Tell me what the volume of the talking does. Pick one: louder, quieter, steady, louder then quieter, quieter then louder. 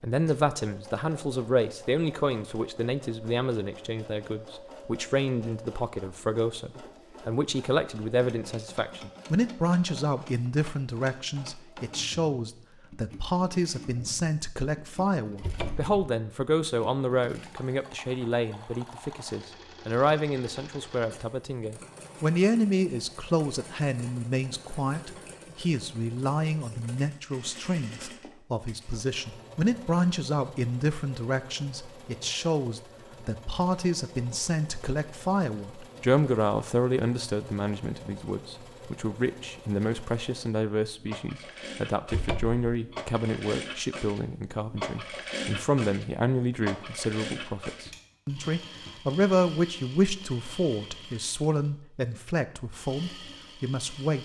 steady.